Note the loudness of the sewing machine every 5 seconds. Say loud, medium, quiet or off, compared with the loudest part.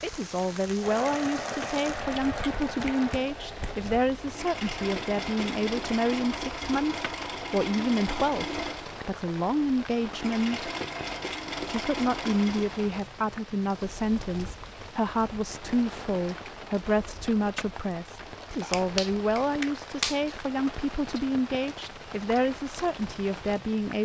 loud, loud, loud, off, off.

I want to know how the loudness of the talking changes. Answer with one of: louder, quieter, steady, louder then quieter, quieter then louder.
steady.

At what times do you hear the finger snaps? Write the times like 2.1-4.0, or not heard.
2.5-3.8, 18.7-20.4.